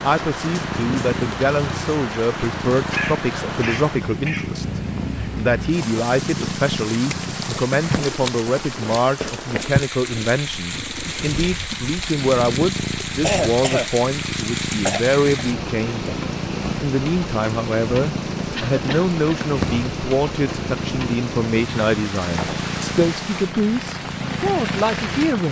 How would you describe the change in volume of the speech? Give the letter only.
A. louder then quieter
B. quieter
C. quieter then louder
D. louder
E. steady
E.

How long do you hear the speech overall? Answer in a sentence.
You can hear the speech for 25 seconds altogether.